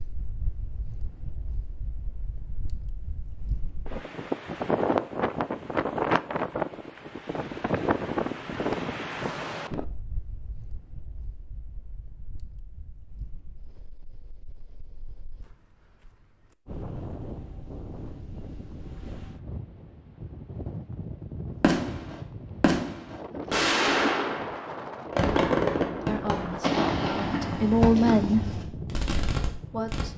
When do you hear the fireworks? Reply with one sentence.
You can hear the fireworks from 21.6 to 30.1 s.